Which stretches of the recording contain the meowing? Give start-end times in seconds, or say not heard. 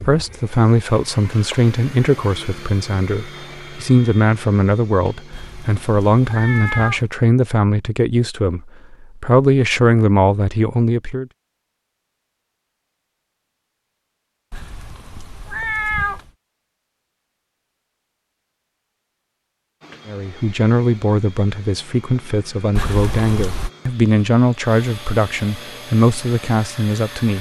5.3-7.1, 14.5-16.3, 22.8-23.7.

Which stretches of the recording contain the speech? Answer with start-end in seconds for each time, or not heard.
0.0-11.2, 20.1-27.3.